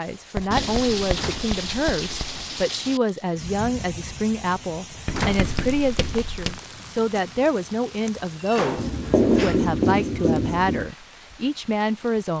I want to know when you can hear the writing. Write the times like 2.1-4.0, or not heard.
0.3-2.5, 5.0-6.6, 8.8-10.9.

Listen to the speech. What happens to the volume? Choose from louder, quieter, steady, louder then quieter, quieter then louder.
steady.